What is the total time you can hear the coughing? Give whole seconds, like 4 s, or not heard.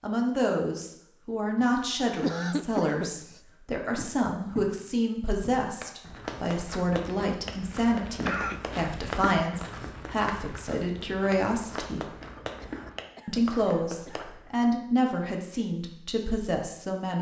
4 s.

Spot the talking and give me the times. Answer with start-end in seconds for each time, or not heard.
0.0-12.1, 13.2-17.1.